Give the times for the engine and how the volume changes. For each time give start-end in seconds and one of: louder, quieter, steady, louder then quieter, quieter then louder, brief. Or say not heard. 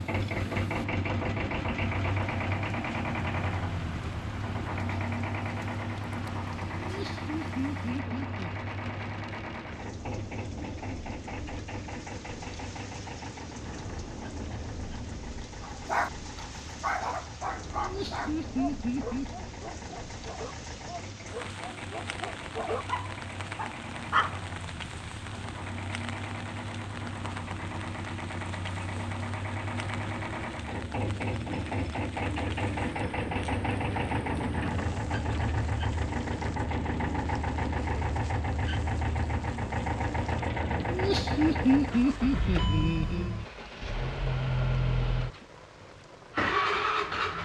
0.0-47.4 quieter then louder.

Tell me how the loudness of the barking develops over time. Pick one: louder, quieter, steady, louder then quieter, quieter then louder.
quieter then louder.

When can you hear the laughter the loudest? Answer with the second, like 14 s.
42 s.